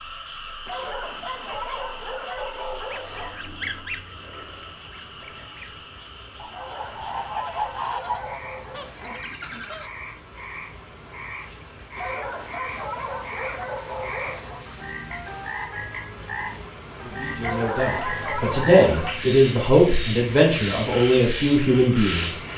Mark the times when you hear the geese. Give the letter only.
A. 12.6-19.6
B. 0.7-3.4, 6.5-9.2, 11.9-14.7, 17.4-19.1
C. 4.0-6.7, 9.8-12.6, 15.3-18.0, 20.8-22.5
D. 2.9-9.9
D.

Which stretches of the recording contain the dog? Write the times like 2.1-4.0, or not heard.
0.7-3.4, 6.5-9.2, 11.9-14.7, 17.4-19.1.